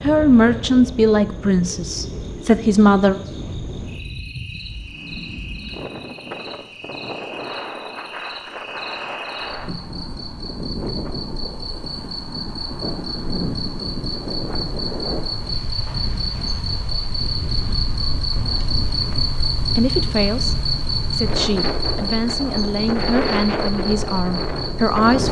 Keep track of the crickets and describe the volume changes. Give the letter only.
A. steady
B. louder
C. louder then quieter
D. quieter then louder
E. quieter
B.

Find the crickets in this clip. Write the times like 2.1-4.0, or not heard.
0.0-25.1.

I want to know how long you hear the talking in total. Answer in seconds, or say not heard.
9 s.